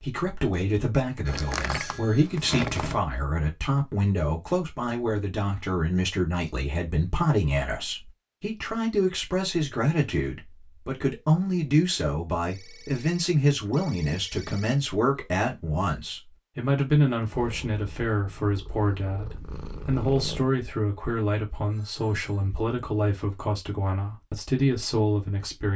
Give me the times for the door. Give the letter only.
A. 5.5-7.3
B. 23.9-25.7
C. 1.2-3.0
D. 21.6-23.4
C.